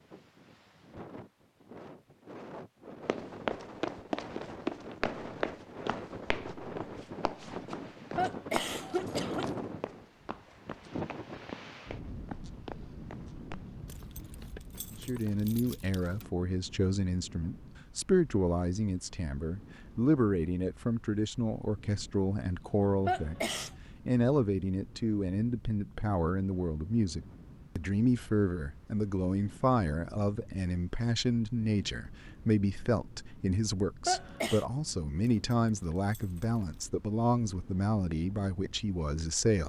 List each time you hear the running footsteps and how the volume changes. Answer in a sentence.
The running footsteps can be heard from 3.0 to 14.6 s, getting quieter.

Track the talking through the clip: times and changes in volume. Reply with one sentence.
You can hear the talking from 14.9 to 39.6 s, at a steady volume.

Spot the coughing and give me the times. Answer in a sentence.
You can hear the coughing from 8.2 to 9.5 s, from 23.1 to 23.7 s and from 34.0 to 34.6 s.